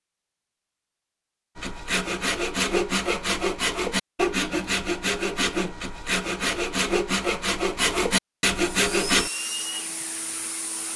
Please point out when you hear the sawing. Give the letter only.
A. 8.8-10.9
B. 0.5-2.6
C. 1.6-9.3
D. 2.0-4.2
C.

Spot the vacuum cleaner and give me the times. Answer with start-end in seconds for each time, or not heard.
8.8-10.9.